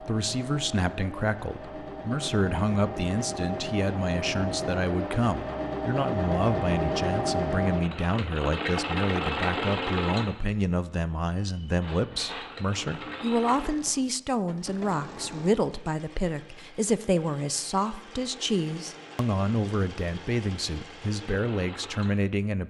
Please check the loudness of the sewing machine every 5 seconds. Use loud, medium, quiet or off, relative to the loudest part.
medium, loud, medium, quiet, quiet.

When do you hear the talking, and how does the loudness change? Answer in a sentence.
The talking can be heard from 0.0 to 22.6 s, at a steady volume.